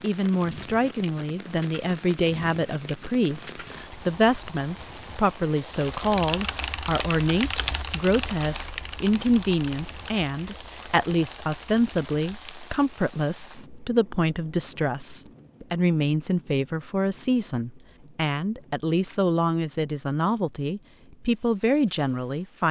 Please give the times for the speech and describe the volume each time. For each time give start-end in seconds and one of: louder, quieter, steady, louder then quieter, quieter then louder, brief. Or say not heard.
0.0-22.6 steady.